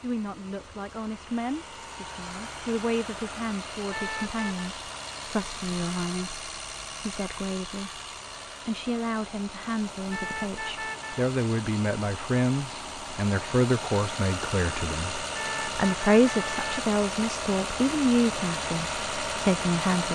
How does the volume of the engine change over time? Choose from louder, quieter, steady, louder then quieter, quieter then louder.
louder.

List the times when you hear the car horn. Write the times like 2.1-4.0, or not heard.
3.9-4.7, 10.1-11.2, 15.3-16.9.